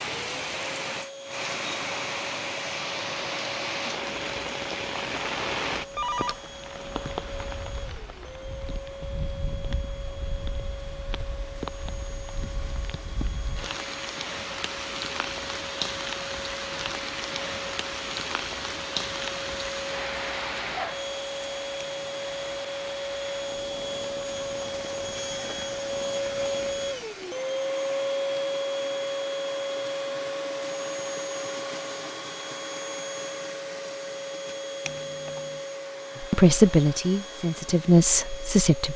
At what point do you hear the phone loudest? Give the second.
6 s.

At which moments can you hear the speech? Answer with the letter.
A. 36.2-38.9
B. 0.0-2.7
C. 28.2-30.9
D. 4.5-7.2
A.